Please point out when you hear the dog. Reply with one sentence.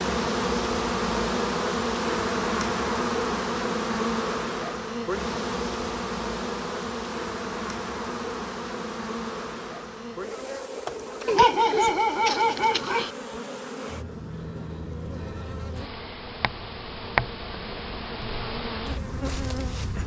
You can hear the dog from 11.2 to 13.1 s.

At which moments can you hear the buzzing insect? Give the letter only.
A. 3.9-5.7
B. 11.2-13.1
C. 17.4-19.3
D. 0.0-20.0
D.